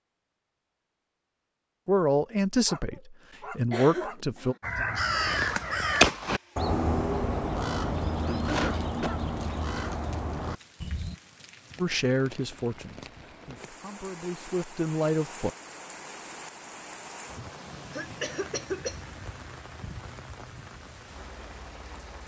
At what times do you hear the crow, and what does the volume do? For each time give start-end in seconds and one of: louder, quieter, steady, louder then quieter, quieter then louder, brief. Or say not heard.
4.6-11.2 quieter.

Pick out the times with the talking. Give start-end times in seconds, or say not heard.
1.9-4.5, 11.8-15.5.